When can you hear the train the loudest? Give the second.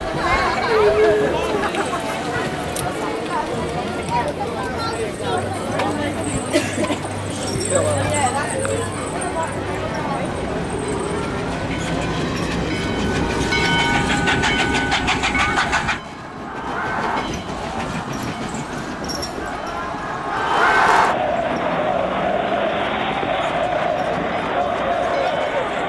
14 s.